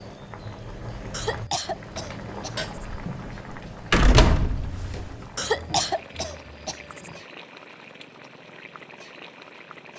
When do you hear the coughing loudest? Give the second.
6 s.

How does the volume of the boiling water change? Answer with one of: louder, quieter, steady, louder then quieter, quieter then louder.
quieter.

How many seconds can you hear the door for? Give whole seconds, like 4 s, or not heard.
2 s.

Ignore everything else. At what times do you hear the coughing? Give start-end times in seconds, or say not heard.
1.1-3.0, 5.3-7.2.